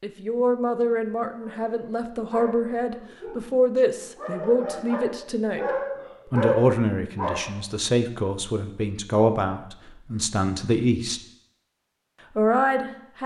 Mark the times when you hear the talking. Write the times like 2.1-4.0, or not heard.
0.0-5.7, 6.2-11.2, 12.3-13.2.